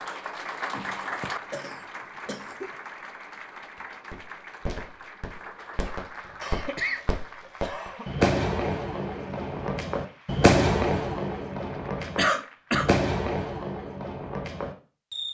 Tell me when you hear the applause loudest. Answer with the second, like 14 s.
1 s.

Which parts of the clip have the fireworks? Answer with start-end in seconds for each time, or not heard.
4.1-15.2.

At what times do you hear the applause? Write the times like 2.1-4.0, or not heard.
0.0-12.9.